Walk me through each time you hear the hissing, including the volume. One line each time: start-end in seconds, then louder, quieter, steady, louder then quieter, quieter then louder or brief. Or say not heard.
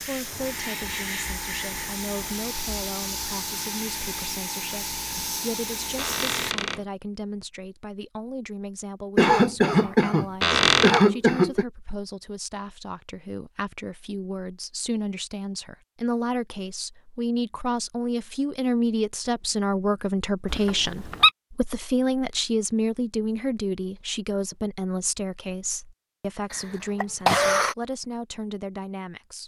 0.0-6.5 steady.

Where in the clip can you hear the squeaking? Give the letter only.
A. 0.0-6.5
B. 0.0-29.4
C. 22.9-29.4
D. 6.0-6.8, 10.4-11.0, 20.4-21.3
D.